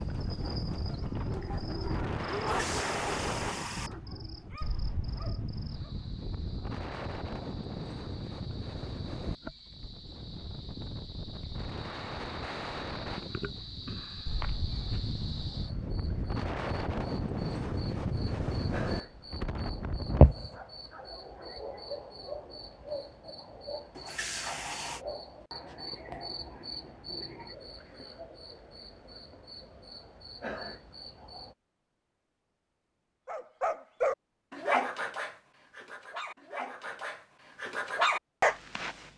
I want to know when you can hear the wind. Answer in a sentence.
You can hear the wind from 0.0 to 20.2 s.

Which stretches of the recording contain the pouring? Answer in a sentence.
The pouring can be heard from 2.4 to 3.9 s and from 23.9 to 25.1 s.